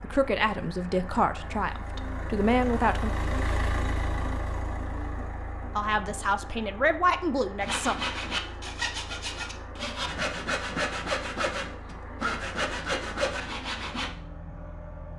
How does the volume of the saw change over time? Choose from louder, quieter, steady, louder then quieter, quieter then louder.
steady.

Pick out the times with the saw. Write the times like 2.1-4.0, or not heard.
7.6-14.1.